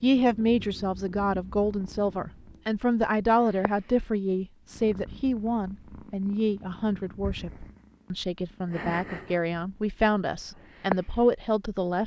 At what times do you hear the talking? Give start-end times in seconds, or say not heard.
0.0-12.0.